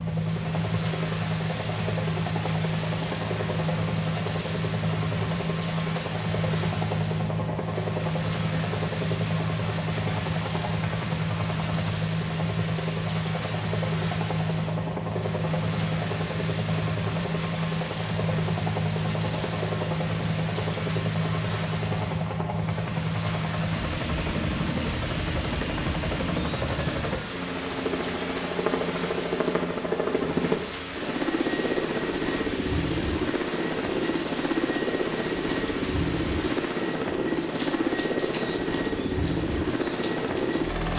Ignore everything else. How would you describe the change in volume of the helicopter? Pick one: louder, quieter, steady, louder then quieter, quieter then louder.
steady.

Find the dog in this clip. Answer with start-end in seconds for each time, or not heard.
not heard.